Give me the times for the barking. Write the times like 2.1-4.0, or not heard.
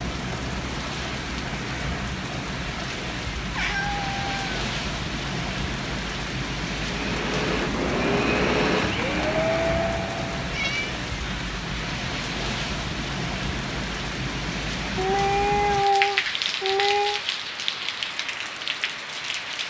not heard.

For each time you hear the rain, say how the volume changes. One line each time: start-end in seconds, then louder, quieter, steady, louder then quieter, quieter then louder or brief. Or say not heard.
0.0-19.6 steady.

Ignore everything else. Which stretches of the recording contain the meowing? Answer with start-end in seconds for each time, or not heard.
3.5-4.6, 10.4-11.5, 14.9-17.2.